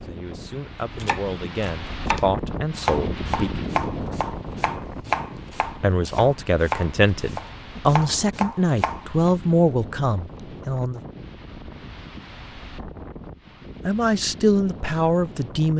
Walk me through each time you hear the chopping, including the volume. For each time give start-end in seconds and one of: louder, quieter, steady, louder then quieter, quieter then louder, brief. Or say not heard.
0.9-9.3 steady.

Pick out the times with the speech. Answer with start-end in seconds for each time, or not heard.
0.0-3.5, 5.8-11.0, 13.8-15.7.